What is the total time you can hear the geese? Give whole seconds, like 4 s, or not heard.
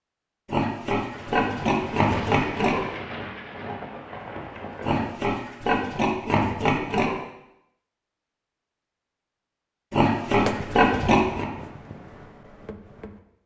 not heard.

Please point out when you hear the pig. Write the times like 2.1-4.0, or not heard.
0.5-2.9, 4.8-7.2, 9.9-11.5.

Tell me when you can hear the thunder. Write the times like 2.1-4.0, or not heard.
1.1-5.0.